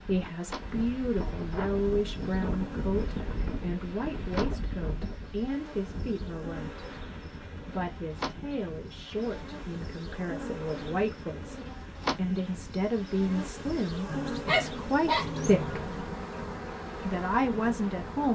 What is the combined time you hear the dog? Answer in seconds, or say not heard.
2 s.